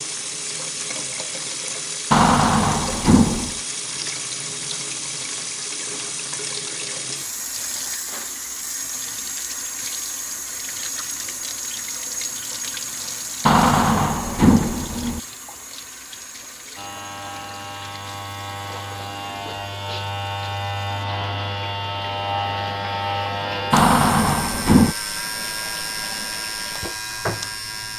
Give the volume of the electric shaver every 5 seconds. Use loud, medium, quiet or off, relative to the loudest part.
off, off, off, medium, loud, loud.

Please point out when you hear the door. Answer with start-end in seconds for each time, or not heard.
2.1-3.5, 13.4-15.2, 23.7-24.9.